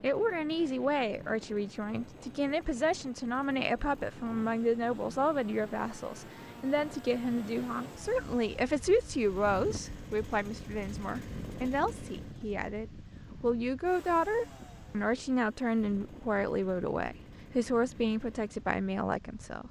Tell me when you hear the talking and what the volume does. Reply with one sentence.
The talking can be heard from 0.0 to 19.6 s, at a steady volume.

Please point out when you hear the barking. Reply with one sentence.
You can't hear the barking here.